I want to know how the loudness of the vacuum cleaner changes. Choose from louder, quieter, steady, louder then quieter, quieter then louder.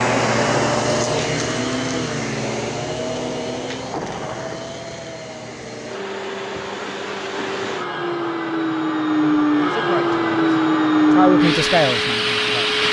quieter then louder.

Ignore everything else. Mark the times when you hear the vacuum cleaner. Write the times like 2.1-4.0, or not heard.
0.0-12.8.